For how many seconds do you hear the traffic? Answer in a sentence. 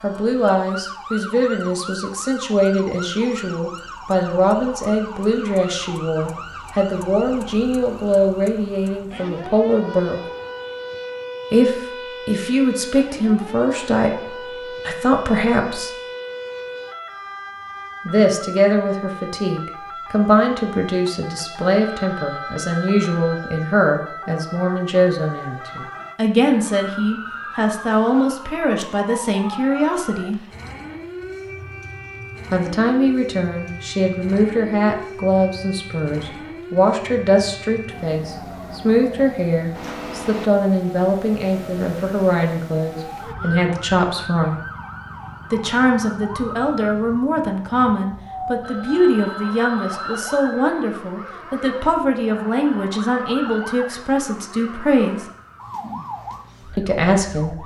You can't hear the traffic here.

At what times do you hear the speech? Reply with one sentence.
You can hear the speech from 0.0 to 10.2 s, from 11.5 to 15.9 s, from 18.1 to 30.4 s, from 32.5 to 44.6 s, from 45.5 to 55.2 s and from 56.8 to 57.5 s.